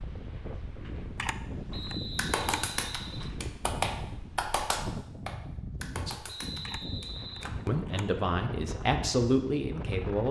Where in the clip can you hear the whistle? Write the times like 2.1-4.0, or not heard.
1.7-3.4, 6.2-7.5.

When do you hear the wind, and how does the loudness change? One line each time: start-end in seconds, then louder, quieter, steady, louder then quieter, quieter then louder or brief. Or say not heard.
0.0-10.2 steady.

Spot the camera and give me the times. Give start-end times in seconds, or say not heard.
1.1-2.6, 6.6-8.1.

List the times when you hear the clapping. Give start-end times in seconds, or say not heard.
2.1-7.5.